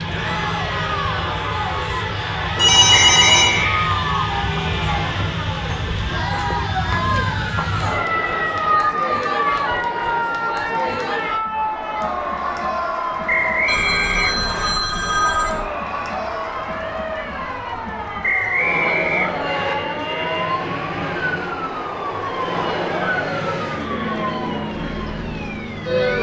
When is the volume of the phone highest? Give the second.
3 s.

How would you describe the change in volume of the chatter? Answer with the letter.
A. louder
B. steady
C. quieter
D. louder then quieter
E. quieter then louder
B.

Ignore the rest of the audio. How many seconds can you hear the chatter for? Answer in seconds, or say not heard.
26 s.